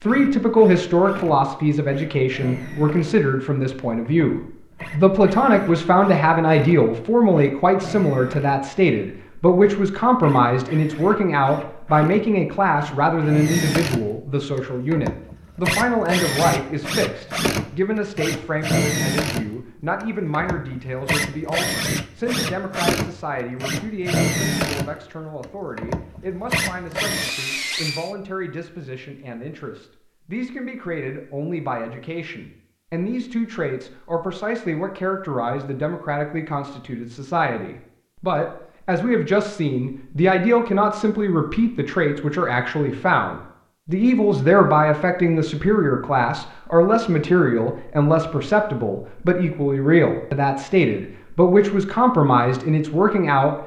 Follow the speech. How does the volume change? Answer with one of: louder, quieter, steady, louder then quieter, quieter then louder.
quieter then louder.